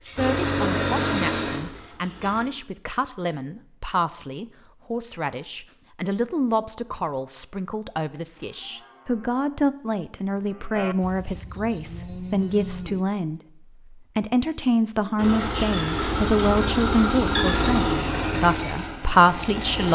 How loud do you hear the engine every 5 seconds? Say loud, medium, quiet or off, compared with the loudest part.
loud, off, off, loud.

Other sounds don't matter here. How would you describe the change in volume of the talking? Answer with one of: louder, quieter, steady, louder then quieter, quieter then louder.
louder.